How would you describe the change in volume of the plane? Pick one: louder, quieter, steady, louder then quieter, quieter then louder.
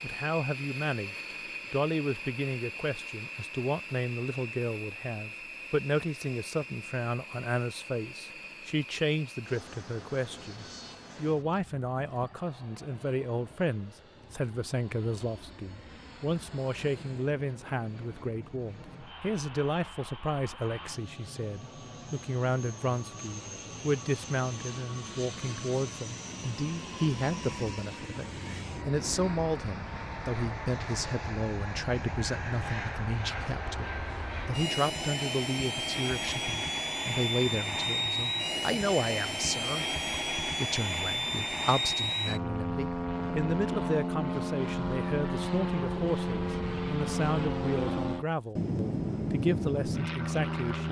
quieter then louder.